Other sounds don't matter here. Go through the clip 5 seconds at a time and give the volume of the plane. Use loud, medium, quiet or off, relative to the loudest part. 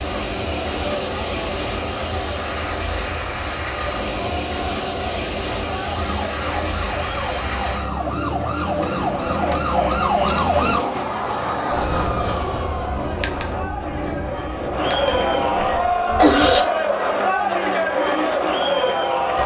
loud, loud, loud, medium.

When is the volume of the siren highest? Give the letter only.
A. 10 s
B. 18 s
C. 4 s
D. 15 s
A.